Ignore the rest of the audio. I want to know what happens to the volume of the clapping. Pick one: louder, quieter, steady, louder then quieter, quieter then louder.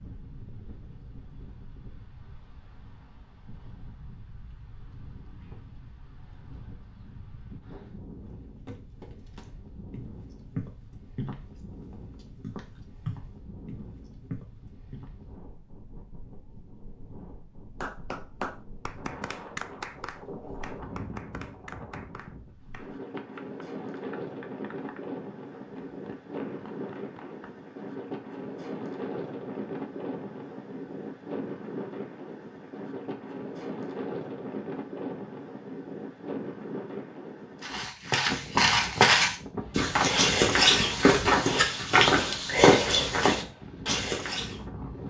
quieter.